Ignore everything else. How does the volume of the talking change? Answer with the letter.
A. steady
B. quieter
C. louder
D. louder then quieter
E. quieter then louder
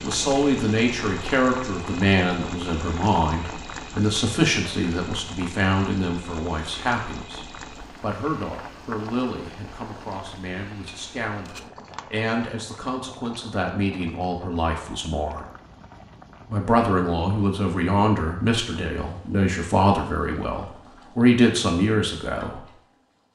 E.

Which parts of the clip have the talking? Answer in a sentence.
You can hear the talking from 0.0 to 15.4 s and from 16.4 to 22.6 s.